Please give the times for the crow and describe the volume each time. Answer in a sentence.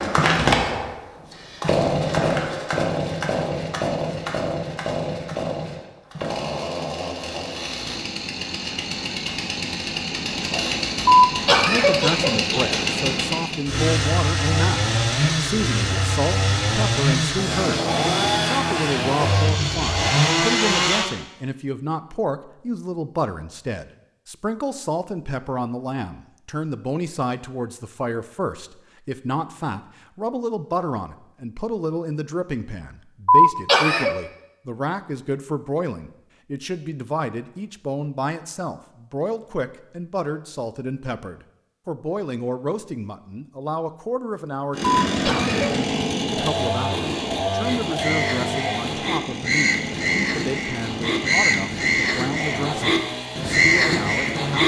The crow can be heard from 47.9 to 54.6 s, getting louder.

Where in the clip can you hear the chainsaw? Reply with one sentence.
The chainsaw can be heard from 0.0 to 21.1 s and from 44.7 to 54.6 s.